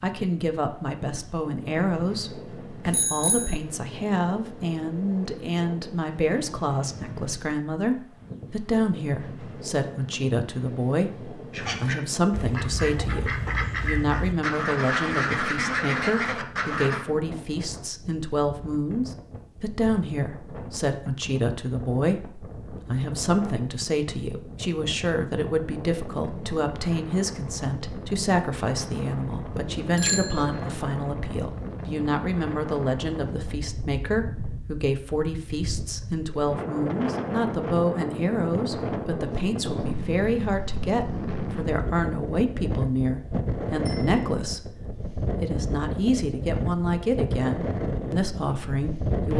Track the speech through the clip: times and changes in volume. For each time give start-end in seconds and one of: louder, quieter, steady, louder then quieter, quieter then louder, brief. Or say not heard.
0.0-49.3 steady.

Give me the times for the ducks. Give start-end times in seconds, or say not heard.
11.5-17.1.